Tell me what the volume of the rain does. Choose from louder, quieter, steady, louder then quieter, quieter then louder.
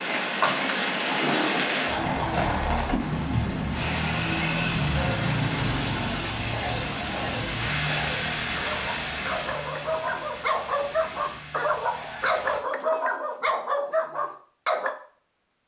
quieter.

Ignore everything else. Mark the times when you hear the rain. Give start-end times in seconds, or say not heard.
0.0-12.6.